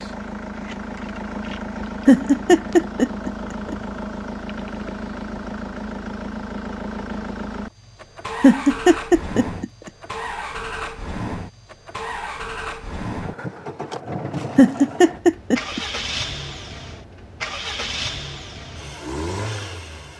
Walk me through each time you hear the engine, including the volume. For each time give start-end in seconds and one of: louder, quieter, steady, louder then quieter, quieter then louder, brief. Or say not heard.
0.0-20.1 steady.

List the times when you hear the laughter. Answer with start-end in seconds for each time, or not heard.
2.0-3.8, 8.4-9.7, 14.6-15.8.